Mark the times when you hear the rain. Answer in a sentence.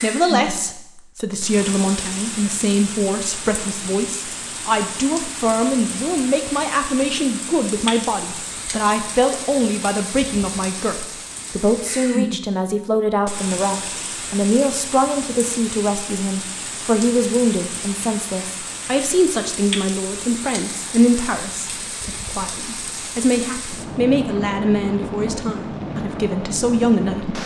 You can hear the rain from 0.0 to 27.4 s.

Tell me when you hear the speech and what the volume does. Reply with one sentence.
The speech can be heard from 0.0 to 27.4 s, at a steady volume.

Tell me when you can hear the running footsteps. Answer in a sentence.
You can't hear the running footsteps here.